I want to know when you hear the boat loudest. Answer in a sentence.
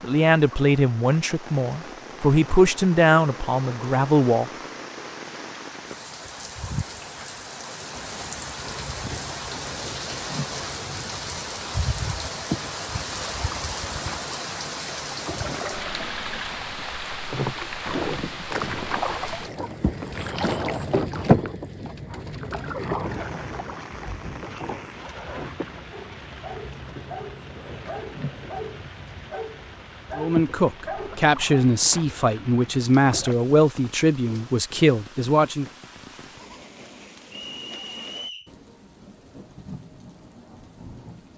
The loudest moment of the boat is at 21 seconds.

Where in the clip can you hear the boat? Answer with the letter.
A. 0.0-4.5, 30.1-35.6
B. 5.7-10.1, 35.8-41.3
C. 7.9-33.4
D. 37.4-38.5
C.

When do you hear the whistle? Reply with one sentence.
You can hear the whistle from 37.4 to 38.5 s.